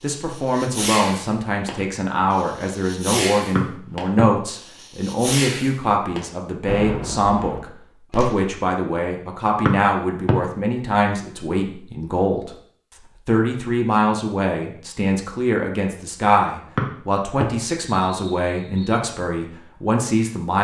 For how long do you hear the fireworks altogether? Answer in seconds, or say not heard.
8 s.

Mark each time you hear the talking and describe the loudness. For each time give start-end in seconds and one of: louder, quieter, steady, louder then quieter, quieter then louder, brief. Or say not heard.
0.0-20.5 steady.